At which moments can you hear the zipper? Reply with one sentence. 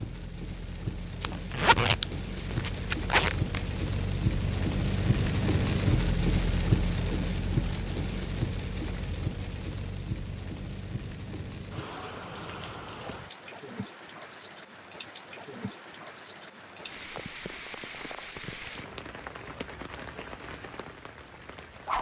The zipper can be heard from 1.2 to 3.6 s.